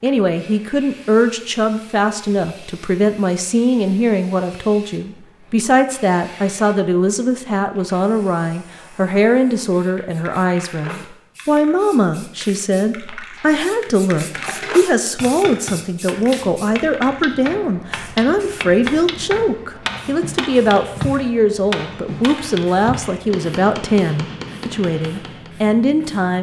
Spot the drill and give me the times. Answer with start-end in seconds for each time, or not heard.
not heard.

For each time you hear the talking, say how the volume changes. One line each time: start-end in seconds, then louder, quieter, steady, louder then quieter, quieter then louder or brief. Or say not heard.
0.0-26.3 steady.